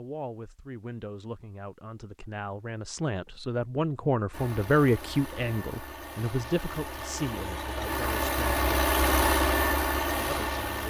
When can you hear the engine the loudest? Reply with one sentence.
The volume of the engine peaks at 9 seconds.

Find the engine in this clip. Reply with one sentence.
The engine can be heard from 4.3 to 10.8 s.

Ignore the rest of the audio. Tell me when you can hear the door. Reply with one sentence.
You can't hear the door here.